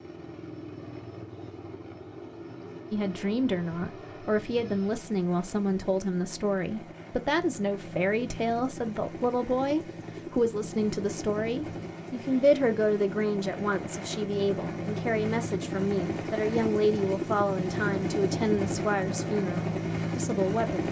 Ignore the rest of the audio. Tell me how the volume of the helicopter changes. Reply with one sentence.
The loudness of the helicopter goes up.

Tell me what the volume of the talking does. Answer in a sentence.
The loudness of the talking stays about the same.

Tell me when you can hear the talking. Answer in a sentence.
The talking can be heard from 2.9 to 20.8 s.